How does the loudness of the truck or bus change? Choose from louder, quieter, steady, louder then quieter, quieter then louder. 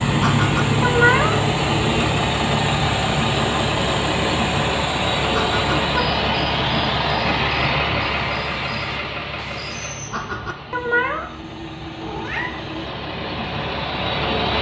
quieter.